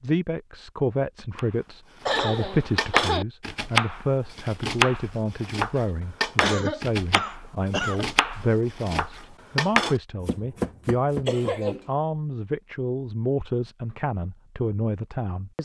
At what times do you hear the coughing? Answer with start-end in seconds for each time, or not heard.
2.0-3.2, 6.4-8.1, 11.2-11.8.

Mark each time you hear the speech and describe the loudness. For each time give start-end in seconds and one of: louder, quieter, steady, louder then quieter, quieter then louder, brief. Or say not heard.
0.0-15.6 steady.